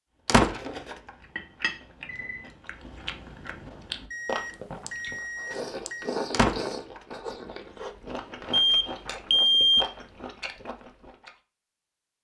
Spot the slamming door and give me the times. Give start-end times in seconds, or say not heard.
0.2-0.9, 6.3-7.0.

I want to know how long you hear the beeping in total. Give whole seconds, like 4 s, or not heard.
4 s.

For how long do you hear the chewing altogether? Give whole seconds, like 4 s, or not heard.
11 s.